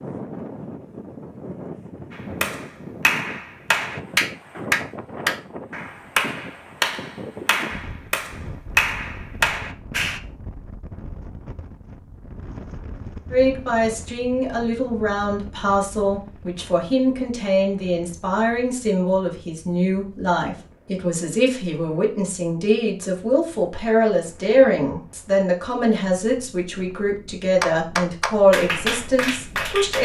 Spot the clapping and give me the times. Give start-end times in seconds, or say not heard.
2.1-10.2, 27.6-29.9.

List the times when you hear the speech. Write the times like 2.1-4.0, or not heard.
13.3-29.9.